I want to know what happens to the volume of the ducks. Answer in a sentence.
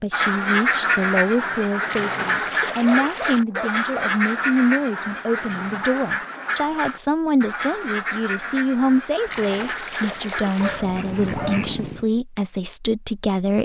The volume of the ducks goes down.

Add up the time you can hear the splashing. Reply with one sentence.
You can hear the splashing for 3 seconds altogether.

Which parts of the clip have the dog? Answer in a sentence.
You can hear the dog from 2.9 to 4.2 s and from 10.6 to 12.1 s.